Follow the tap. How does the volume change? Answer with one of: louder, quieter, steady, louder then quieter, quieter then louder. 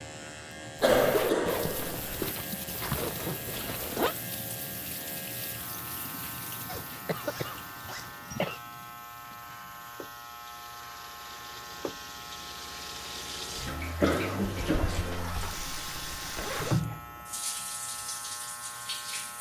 quieter then louder.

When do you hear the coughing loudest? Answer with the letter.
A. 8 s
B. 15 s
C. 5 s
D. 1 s
D.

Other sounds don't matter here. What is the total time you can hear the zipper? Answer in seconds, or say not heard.
7 s.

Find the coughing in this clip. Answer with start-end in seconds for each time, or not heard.
0.8-2.4, 7.0-8.6, 14.0-15.1.